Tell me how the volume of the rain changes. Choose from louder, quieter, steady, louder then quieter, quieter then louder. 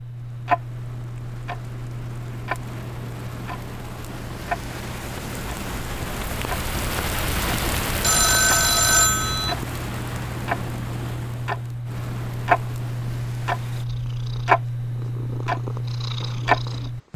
louder then quieter.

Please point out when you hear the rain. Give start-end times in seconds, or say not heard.
0.0-13.8.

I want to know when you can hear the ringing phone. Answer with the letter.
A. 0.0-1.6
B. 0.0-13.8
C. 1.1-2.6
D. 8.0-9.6
D.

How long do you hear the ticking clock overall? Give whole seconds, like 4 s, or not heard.
17 s.